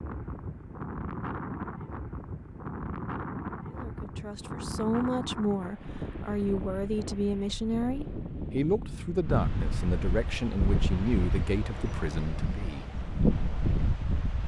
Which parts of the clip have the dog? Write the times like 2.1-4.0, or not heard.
not heard.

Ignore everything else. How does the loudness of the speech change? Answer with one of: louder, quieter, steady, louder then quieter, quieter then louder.
steady.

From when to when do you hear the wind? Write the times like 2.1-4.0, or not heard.
0.0-14.4.